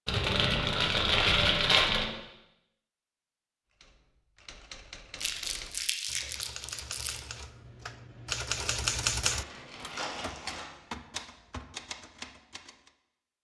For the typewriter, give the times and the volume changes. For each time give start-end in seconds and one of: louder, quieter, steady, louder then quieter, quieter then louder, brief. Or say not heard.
3.8-12.9 louder then quieter.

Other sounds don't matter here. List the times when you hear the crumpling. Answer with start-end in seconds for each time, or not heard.
0.1-2.0, 5.2-7.2, 9.3-10.7.